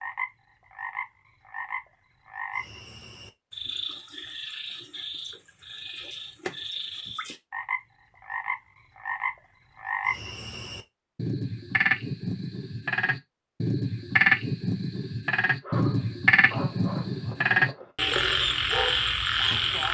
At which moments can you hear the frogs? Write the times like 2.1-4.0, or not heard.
0.0-19.8.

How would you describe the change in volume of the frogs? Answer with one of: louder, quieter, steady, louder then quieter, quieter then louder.
louder.